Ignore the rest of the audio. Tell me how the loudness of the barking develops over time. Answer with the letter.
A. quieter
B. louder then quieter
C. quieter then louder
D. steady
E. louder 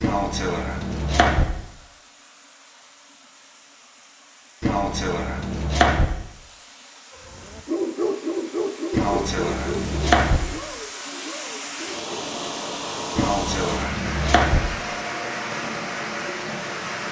A.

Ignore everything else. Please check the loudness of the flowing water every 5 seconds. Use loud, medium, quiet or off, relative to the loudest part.
quiet, quiet, loud, loud.